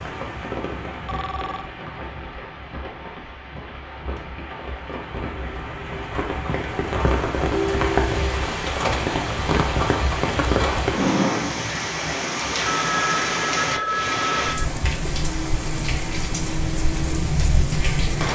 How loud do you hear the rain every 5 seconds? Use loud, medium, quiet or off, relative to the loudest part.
medium, loud, loud, loud.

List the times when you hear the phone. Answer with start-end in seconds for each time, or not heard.
1.1-1.7, 7.5-8.4, 12.7-14.7.